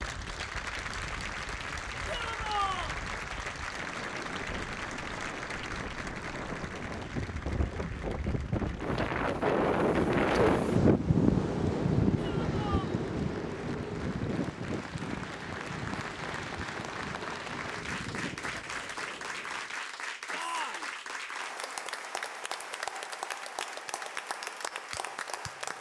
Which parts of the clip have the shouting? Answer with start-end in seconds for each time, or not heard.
2.0-3.0, 12.2-12.9, 20.3-20.9.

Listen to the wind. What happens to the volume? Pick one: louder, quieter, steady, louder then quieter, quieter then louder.
louder then quieter.